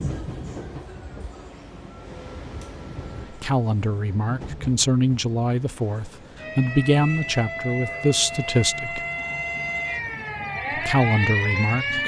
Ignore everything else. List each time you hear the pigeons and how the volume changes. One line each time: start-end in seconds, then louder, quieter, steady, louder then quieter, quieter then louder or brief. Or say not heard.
not heard.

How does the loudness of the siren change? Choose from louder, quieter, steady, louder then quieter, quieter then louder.
louder.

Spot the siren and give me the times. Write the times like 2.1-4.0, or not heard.
6.3-12.0.